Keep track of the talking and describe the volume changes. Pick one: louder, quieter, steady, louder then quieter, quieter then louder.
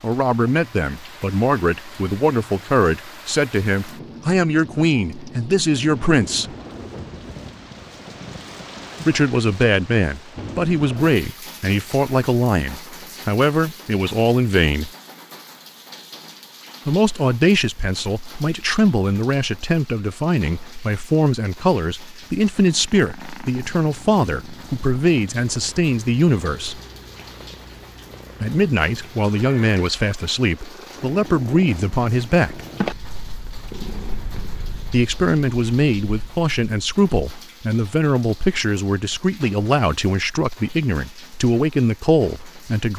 steady.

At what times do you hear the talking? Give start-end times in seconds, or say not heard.
0.0-6.5, 9.1-14.9, 16.9-26.8, 28.4-32.6, 34.8-42.9.